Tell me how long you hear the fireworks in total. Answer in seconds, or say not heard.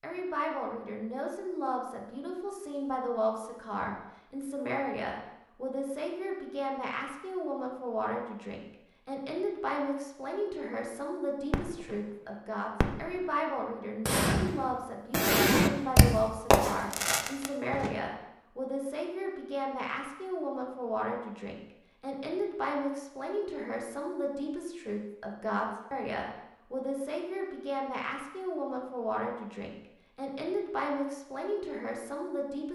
5 s.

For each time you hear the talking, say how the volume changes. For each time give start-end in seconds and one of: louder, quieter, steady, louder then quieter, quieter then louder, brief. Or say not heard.
0.0-32.7 steady.